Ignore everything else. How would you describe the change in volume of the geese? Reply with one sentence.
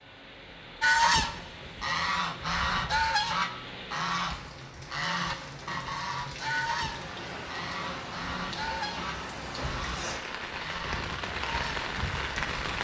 The volume of the geese goes down.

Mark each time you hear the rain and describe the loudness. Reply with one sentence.
The rain can be heard from 0.0 to 12.8 s, getting louder.